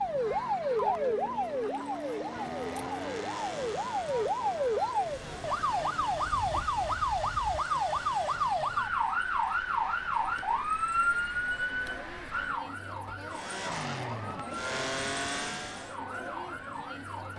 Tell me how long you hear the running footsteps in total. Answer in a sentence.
The running footsteps can't be heard in this clip.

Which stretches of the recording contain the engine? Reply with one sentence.
The engine can be heard from 0.0 to 9.2 s and from 13.3 to 15.9 s.